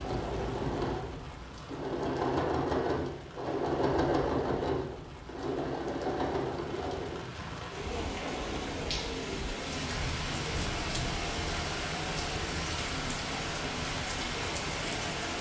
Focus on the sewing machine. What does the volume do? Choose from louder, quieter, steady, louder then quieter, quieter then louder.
quieter.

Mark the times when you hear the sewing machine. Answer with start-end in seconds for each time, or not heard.
0.0-15.3.